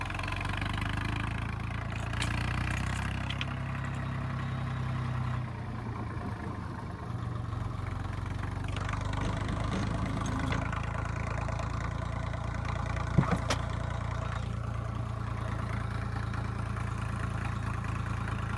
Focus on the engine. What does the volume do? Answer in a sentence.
The loudness of the engine stays about the same.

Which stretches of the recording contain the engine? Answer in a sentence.
The engine can be heard from 0.0 to 18.5 s.